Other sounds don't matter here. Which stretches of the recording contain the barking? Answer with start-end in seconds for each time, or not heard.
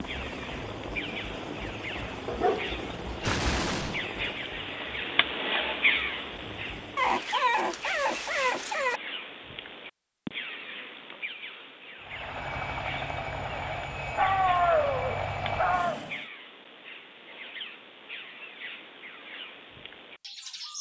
2.2-3.5, 7.0-9.0, 14.2-16.0.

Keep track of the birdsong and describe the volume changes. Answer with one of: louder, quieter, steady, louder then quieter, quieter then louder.
louder then quieter.